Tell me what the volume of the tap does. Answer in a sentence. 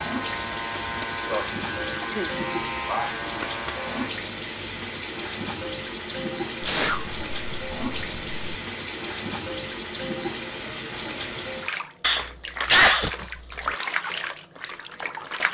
The loudness of the tap stays about the same.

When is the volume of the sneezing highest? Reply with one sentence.
The volume of the sneezing peaks at 13 seconds.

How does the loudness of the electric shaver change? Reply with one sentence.
The loudness of the electric shaver stays about the same.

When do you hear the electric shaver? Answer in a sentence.
The electric shaver can be heard from 0.0 to 4.1 s.